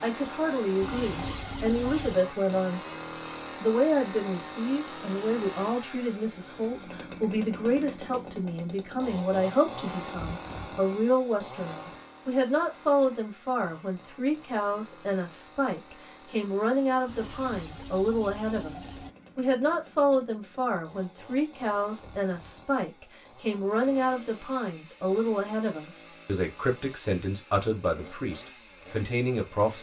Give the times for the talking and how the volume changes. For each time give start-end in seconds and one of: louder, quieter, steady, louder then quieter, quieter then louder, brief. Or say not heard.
0.0-2.8 brief
3.6-29.7 steady.